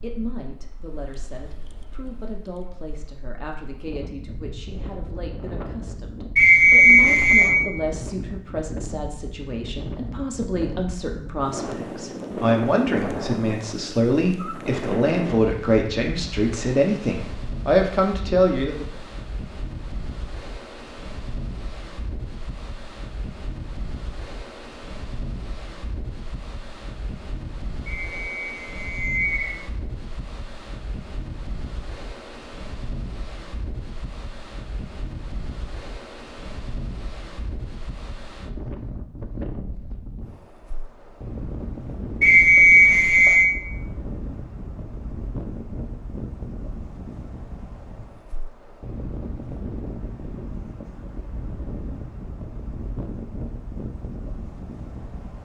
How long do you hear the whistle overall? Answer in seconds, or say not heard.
4 s.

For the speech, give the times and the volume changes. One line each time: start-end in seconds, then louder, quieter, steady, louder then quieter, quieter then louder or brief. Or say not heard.
0.0-18.9 louder.